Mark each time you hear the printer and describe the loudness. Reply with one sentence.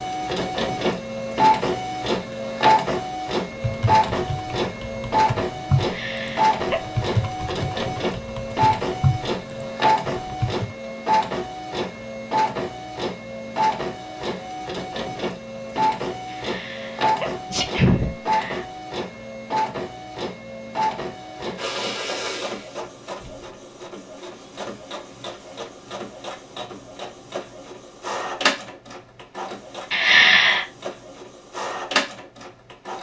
The printer can be heard from 0.0 to 32.9 s, getting quieter.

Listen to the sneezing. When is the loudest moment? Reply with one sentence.
The volume of the sneezing peaks at 30 seconds.